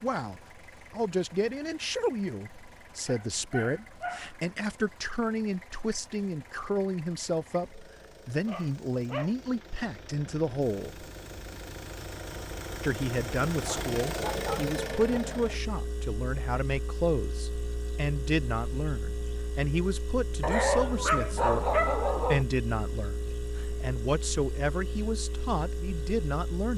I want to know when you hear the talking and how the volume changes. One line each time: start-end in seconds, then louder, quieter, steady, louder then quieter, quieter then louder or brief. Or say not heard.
0.0-11.1 steady
12.8-26.7 steady.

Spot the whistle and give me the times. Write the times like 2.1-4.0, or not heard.
not heard.